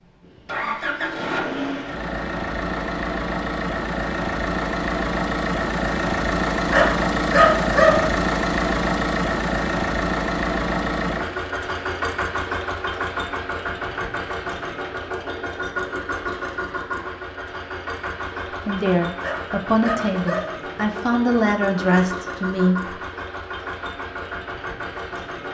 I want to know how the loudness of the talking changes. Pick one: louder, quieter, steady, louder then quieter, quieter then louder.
steady.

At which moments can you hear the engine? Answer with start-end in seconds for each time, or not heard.
0.0-25.4.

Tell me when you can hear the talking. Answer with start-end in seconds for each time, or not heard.
18.6-22.9.